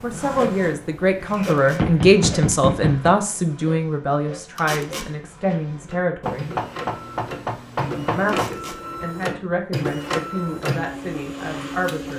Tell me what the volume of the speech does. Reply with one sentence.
The volume of the speech goes down.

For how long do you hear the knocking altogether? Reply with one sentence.
The knocking can be heard for 4 seconds in total.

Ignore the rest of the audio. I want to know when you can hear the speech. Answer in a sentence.
You can hear the speech from 0.0 to 6.5 s and from 8.0 to 12.1 s.